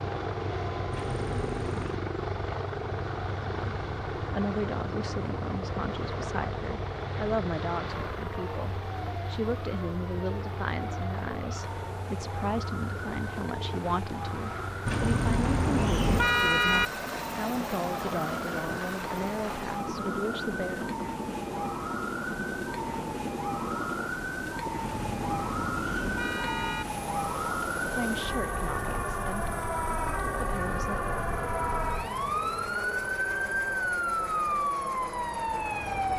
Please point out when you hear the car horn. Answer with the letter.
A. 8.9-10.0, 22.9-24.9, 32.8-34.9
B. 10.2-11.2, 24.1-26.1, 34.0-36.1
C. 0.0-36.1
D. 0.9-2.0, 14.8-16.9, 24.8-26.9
D.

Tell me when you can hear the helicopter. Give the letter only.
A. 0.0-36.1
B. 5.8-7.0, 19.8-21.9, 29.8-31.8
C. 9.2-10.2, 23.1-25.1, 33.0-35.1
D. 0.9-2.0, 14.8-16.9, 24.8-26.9
A.